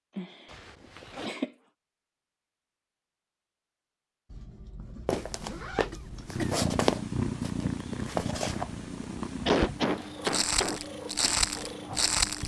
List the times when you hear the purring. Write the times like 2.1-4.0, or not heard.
6.1-12.4.